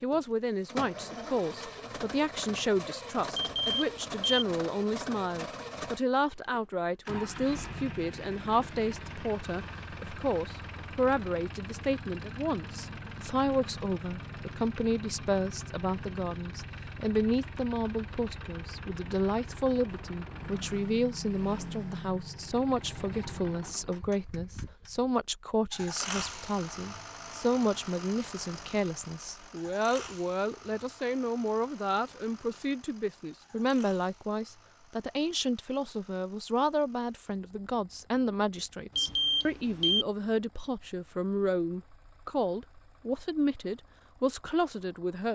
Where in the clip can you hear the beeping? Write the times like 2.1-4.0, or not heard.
3.4-4.5, 39.0-40.0.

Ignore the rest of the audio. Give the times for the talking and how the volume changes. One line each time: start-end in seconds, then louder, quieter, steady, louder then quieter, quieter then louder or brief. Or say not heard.
0.0-45.2 steady.